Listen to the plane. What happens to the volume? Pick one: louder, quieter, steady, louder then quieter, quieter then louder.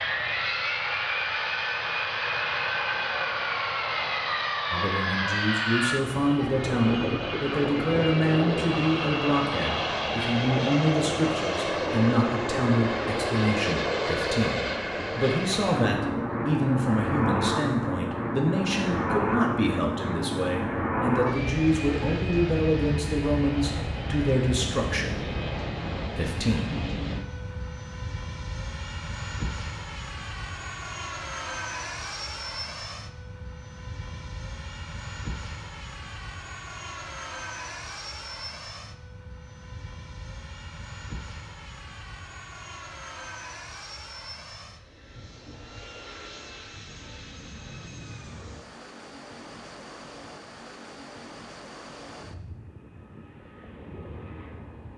quieter.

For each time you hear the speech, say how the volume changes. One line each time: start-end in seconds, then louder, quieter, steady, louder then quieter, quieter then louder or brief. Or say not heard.
4.7-25.2 steady
26.1-26.6 brief.